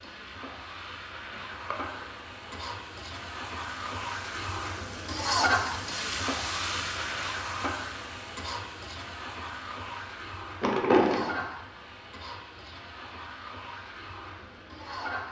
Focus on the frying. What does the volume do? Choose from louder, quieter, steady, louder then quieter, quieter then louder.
louder then quieter.